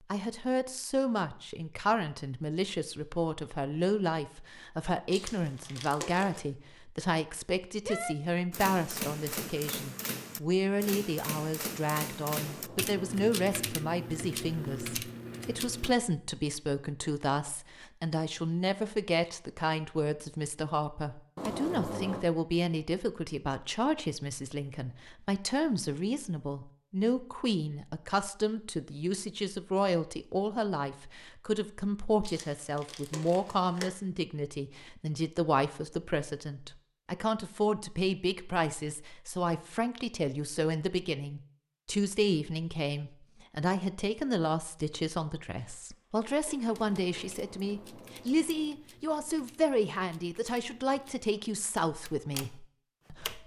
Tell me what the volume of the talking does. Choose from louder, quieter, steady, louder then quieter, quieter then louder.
steady.